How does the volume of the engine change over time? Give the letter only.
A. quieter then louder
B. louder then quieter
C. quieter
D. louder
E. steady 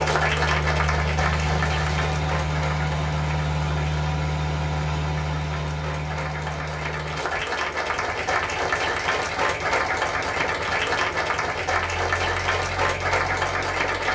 C.